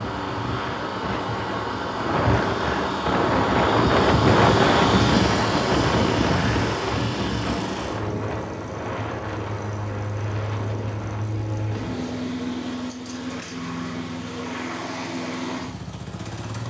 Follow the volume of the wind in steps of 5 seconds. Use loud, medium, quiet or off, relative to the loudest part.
loud, loud, quiet, off.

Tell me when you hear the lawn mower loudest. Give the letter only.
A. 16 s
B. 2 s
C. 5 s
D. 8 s
C.